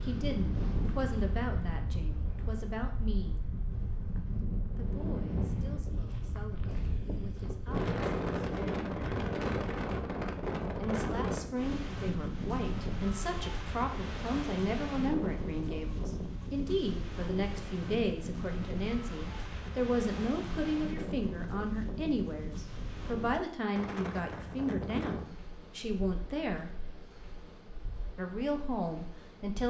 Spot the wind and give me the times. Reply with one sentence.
The wind can be heard from 0.0 to 29.6 s.